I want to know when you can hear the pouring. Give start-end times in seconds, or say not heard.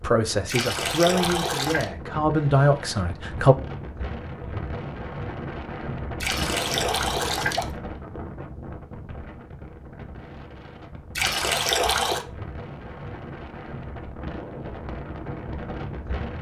0.5-1.9, 6.2-7.7, 11.2-12.2.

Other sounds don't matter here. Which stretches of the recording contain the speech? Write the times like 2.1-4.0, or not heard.
0.0-3.5.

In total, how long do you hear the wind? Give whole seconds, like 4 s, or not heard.
16 s.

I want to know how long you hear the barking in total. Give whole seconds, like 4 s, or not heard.
not heard.